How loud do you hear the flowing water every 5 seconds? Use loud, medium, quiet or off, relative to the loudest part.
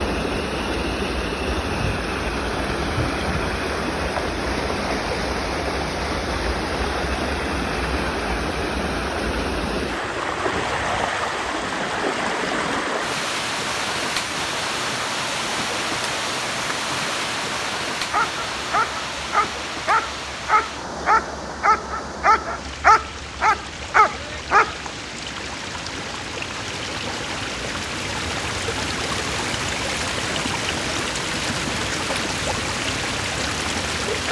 loud, loud, loud, loud, medium, loud, loud.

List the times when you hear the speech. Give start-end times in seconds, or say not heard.
not heard.